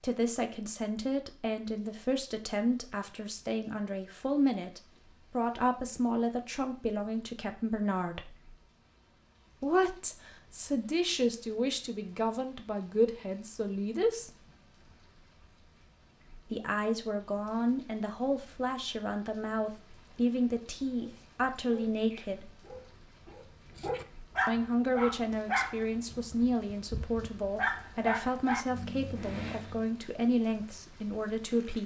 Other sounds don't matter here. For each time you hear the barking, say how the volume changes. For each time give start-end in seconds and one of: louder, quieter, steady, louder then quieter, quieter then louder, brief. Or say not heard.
20.9-29.9 louder.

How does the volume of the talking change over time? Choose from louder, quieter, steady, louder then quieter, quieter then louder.
steady.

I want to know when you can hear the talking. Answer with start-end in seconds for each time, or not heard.
0.0-8.3, 9.6-14.3, 16.5-22.5, 24.4-31.8.